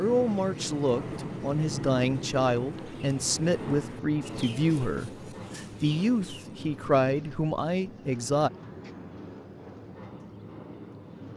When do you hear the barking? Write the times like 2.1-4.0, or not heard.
not heard.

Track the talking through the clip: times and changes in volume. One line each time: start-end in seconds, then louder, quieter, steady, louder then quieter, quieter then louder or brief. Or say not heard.
0.0-8.5 steady.